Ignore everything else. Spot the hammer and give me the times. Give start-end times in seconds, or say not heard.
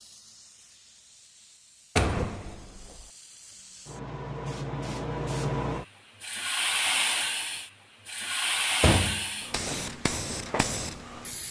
not heard.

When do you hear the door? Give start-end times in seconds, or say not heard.
1.9-3.0, 8.8-9.9.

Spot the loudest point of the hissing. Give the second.
7 s.